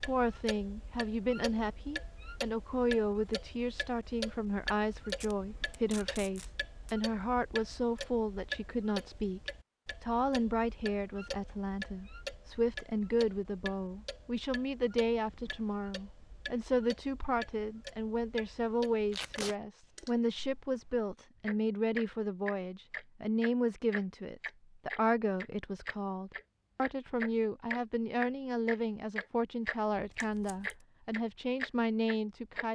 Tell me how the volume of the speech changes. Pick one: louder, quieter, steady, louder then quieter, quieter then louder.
steady.